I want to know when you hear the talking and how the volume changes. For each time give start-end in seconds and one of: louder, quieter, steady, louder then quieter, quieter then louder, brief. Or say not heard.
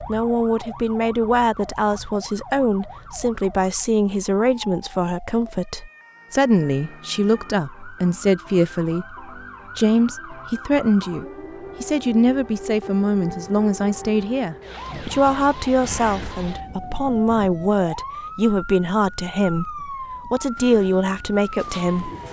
0.1-22.2 steady.